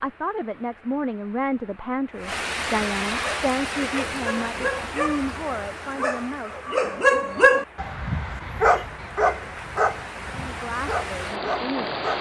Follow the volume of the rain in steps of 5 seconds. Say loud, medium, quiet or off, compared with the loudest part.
loud, medium, loud.